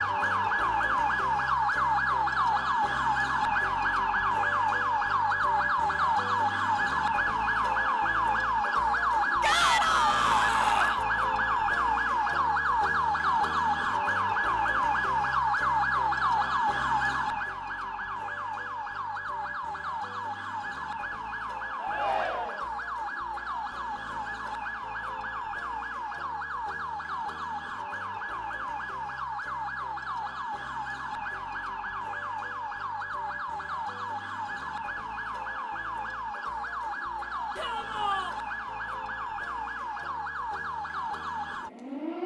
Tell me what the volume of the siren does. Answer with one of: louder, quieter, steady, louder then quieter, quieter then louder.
quieter.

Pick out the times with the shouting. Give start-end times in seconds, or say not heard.
9.4-11.1, 21.8-22.7, 37.5-38.3.